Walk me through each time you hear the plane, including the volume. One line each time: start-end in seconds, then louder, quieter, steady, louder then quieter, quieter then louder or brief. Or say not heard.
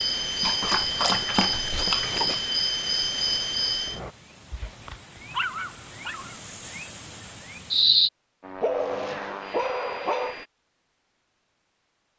0.0-4.2 steady
8.4-10.5 brief.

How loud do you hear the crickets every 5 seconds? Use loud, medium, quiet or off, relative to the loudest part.
loud, loud, off.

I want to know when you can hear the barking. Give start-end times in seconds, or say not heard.
0.4-2.4, 4.5-6.3, 8.6-10.3.